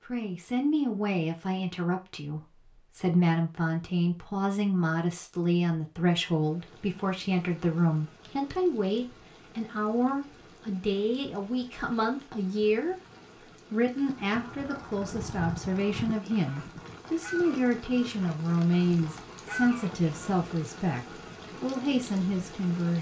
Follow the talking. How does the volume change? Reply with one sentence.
The volume of the talking stays about the same.